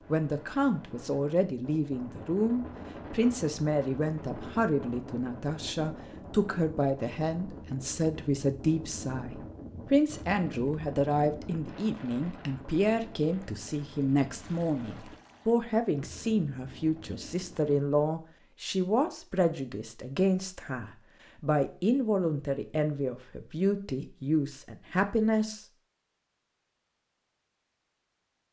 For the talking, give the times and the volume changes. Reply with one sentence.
The talking can be heard from 0.1 to 25.6 s, at a steady volume.